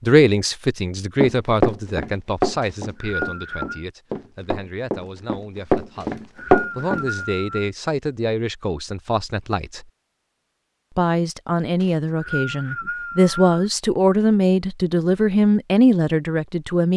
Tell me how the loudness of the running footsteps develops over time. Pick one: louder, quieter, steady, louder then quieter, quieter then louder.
quieter then louder.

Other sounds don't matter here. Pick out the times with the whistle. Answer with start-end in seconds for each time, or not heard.
2.6-3.9, 6.0-7.7, 11.8-13.7.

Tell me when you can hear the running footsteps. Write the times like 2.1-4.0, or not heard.
1.2-7.0.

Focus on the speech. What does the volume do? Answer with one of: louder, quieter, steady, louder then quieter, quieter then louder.
quieter then louder.